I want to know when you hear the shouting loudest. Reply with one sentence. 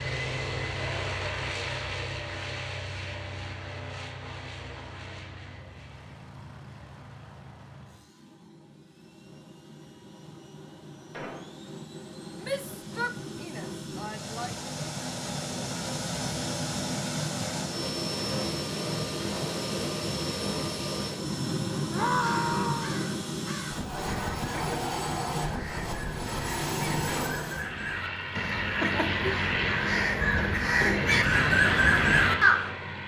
The volume of the shouting peaks at 22 seconds.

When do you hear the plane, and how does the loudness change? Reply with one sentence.
The plane can be heard from 0.0 to 33.0 s, getting quieter then louder.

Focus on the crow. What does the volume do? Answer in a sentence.
The volume of the crow goes up.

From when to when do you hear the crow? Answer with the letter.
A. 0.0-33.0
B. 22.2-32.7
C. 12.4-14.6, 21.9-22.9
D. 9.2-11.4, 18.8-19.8
B.